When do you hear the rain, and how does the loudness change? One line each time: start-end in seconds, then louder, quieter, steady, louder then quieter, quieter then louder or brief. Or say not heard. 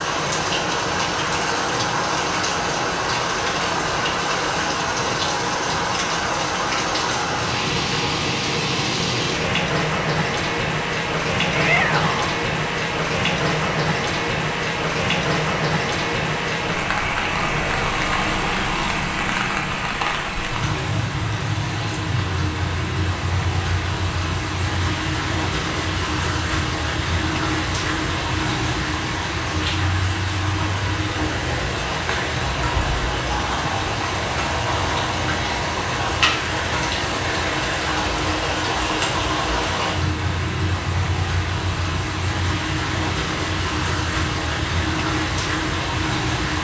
0.0-46.5 steady.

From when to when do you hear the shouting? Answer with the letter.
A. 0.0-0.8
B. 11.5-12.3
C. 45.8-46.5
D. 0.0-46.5
B.